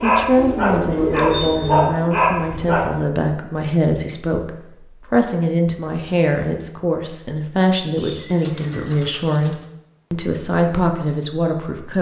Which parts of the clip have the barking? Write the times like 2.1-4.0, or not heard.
0.0-2.9.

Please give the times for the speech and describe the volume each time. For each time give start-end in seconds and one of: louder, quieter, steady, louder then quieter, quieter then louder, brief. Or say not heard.
0.0-11.9 steady.